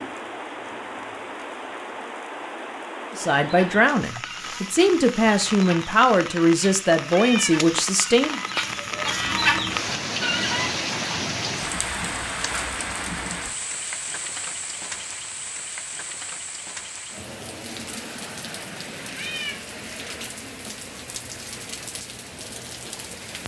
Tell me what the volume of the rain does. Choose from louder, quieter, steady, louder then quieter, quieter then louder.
louder then quieter.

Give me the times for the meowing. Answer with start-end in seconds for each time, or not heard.
7.1-7.6, 19.1-19.6.